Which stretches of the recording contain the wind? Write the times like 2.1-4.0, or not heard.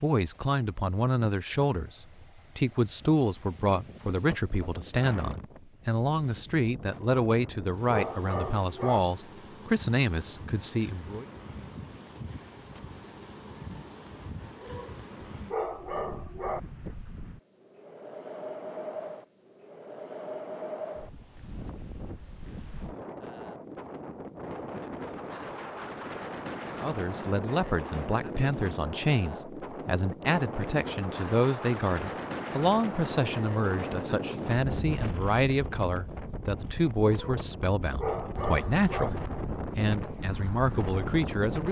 0.0-41.6.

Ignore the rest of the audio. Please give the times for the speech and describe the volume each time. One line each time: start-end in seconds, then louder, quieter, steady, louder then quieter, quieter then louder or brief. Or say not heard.
0.0-11.2 steady
26.7-41.6 steady.